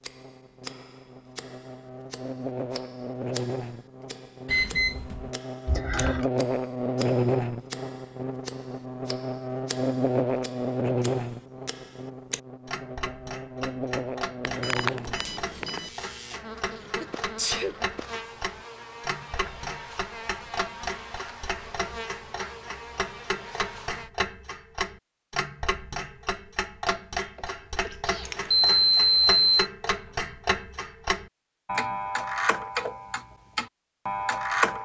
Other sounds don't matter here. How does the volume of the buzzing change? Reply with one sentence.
The volume of the buzzing goes up, then down.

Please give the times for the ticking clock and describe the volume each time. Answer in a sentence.
You can hear the ticking clock from 0.0 to 34.8 s, getting louder.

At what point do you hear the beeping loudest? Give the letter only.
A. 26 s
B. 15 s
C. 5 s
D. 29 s
D.